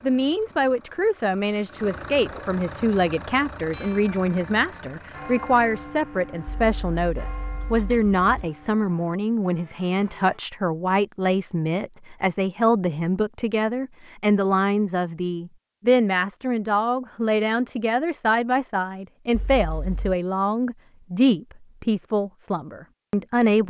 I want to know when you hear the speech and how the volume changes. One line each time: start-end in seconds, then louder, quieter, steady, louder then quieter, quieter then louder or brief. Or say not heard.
0.0-23.6 steady.